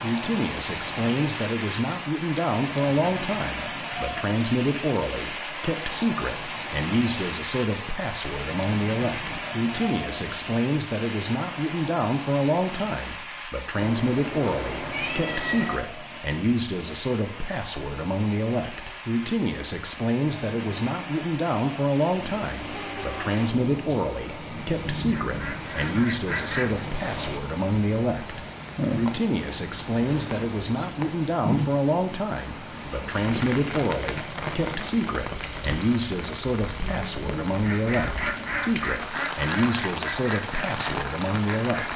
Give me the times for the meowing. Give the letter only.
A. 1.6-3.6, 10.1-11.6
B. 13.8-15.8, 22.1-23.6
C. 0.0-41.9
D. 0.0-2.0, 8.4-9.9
B.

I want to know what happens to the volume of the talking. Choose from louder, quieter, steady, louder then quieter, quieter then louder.
steady.